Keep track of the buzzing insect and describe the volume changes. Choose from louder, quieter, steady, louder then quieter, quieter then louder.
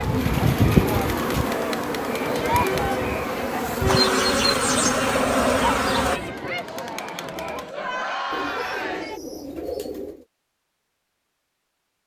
quieter then louder.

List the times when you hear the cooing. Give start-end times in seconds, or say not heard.
0.1-1.6, 4.3-6.3, 8.3-10.2.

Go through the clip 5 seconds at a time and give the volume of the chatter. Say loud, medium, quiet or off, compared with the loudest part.
loud, loud, off.